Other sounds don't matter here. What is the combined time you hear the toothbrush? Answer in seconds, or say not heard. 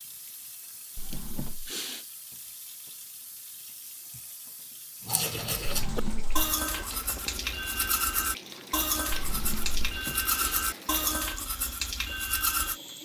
8 s.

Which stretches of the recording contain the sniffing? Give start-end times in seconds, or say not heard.
1.1-2.0, 9.8-10.7.